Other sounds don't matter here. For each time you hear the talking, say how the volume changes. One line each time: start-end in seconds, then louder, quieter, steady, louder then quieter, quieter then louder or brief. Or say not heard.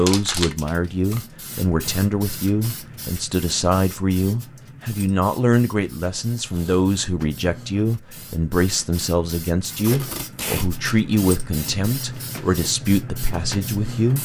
0.0-14.1 steady.